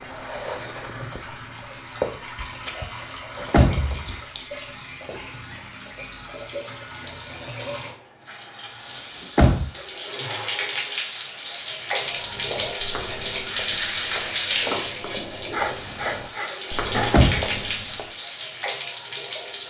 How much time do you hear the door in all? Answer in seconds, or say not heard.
3 s.